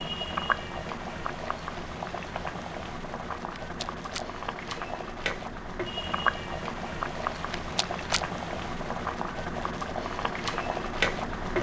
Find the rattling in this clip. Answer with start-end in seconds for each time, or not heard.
3.4-4.2, 7.3-8.2.